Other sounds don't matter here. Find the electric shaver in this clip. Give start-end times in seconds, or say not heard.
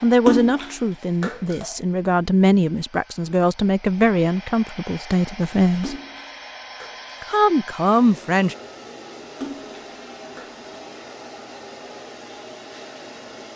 not heard.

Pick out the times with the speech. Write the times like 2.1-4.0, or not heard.
0.0-6.0, 7.2-8.6.